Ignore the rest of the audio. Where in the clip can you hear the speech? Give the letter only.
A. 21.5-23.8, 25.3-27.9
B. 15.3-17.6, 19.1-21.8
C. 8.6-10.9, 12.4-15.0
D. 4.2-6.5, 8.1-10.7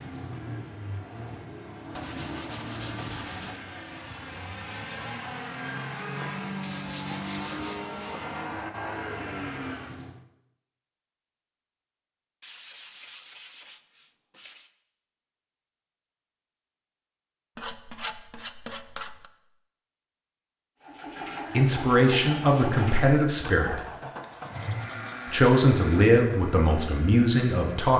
A.